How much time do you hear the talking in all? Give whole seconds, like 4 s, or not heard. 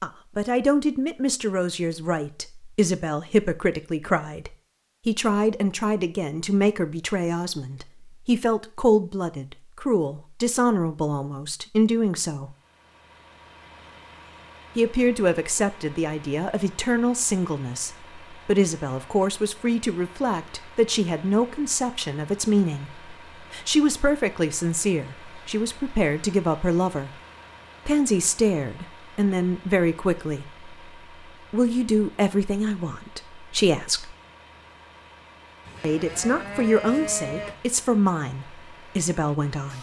34 s.